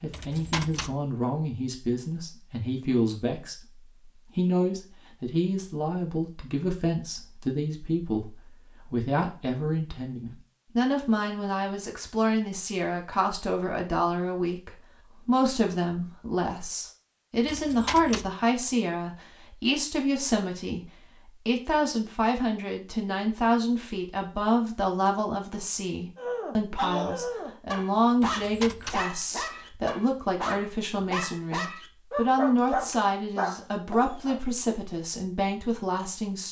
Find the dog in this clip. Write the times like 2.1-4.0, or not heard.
26.1-34.4.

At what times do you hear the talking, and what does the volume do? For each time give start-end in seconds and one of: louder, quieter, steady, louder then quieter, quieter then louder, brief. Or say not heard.
0.0-36.4 steady.